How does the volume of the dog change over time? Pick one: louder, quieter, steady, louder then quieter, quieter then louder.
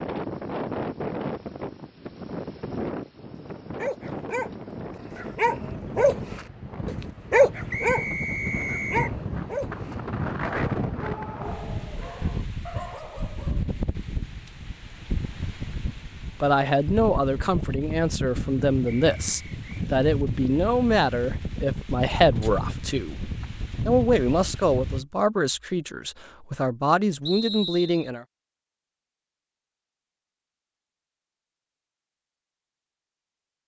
louder then quieter.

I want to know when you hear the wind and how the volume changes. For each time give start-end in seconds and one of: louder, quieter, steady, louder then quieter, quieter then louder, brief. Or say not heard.
0.0-25.1 steady.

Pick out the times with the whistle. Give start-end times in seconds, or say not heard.
7.7-9.2, 18.9-19.9, 27.2-28.1.